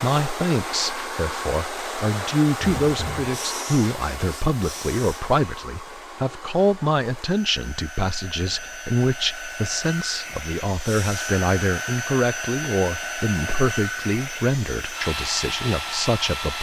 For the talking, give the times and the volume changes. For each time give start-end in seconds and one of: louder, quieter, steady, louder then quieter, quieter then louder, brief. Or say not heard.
0.0-16.5 steady.